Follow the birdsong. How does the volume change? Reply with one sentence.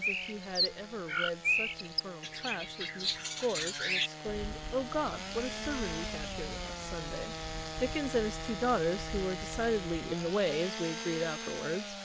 The volume of the birdsong goes down.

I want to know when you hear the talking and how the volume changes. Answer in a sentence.
You can hear the talking from 0.0 to 12.0 s, getting louder.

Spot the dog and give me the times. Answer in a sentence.
You can't hear the dog here.